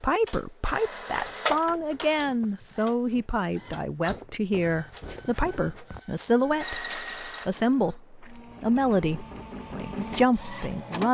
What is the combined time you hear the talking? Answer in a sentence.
The talking can be heard for 11 seconds in total.